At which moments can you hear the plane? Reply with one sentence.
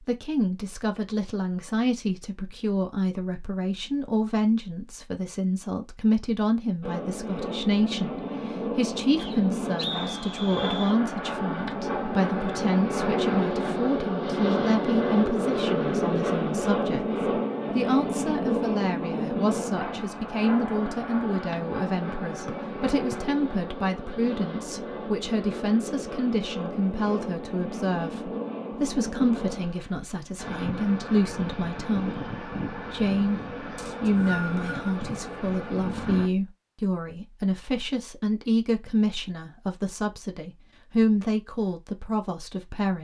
You can hear the plane from 6.8 to 36.3 s.